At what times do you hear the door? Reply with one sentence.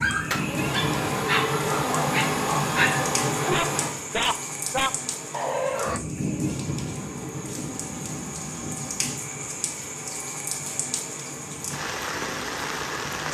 You can't hear the door here.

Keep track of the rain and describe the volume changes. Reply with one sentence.
The loudness of the rain stays about the same.